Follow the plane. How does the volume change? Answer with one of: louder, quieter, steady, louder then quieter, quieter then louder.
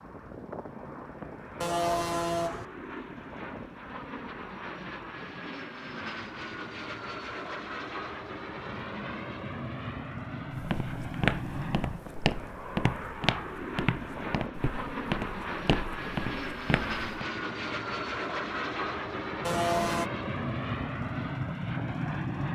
louder.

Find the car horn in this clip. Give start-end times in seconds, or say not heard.
1.6-2.6, 19.4-20.1.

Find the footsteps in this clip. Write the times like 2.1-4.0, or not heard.
10.6-17.0.